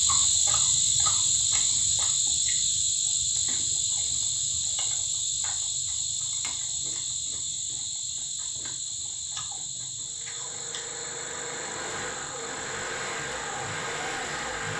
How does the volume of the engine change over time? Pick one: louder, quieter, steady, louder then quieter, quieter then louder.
louder.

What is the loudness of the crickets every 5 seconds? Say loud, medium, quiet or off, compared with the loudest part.
loud, medium, quiet.